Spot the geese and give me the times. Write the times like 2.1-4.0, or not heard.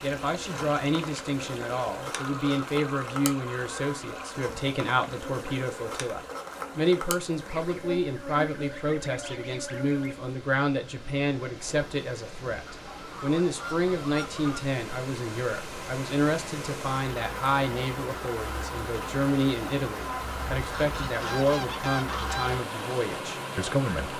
2.1-4.3, 7.5-10.2, 12.7-14.6, 20.2-22.6.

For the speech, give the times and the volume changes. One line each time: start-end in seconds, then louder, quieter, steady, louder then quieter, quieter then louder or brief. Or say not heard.
0.0-24.1 steady.